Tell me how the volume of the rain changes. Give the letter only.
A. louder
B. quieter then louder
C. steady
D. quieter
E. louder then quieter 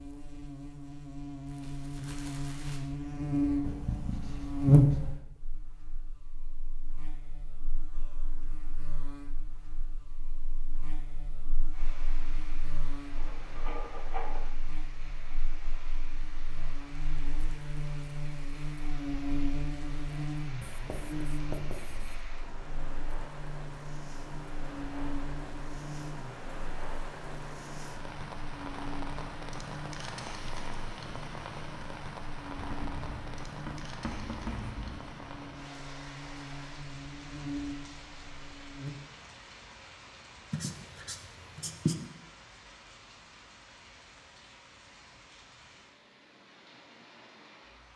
E.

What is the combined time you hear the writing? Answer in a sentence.
The writing can be heard for 9 seconds in total.